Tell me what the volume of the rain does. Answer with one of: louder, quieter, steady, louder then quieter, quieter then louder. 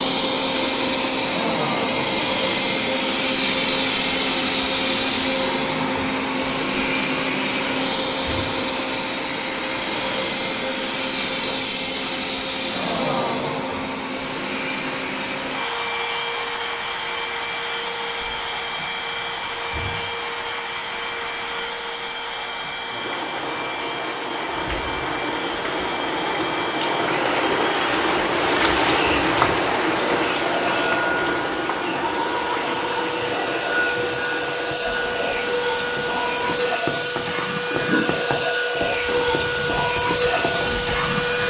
louder then quieter.